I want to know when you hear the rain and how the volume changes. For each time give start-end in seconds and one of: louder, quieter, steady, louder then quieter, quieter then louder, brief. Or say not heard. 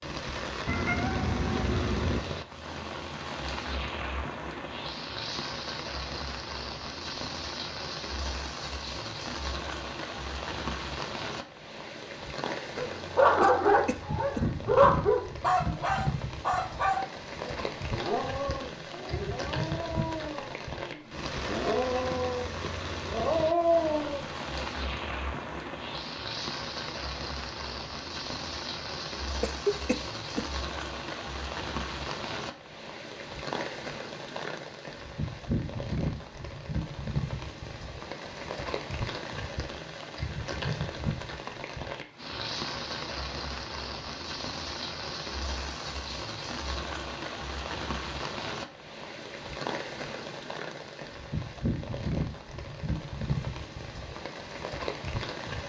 0.0-55.6 steady.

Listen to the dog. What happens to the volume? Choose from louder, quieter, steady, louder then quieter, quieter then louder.
quieter then louder.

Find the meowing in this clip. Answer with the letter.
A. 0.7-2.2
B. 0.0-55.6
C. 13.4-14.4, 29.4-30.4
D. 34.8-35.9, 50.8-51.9
A.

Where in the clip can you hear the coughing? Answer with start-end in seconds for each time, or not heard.
13.4-14.4, 29.4-30.4.